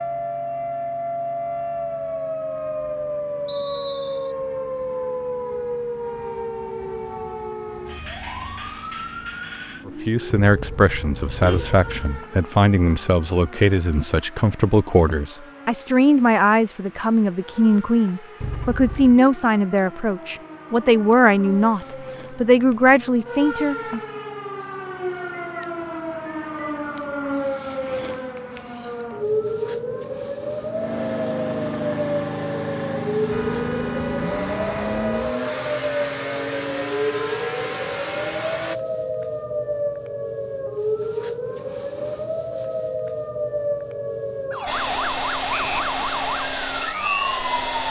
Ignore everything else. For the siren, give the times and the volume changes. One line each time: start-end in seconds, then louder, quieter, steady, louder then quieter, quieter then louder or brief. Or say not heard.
0.0-47.8 quieter then louder.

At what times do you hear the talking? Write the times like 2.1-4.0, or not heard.
9.8-24.0.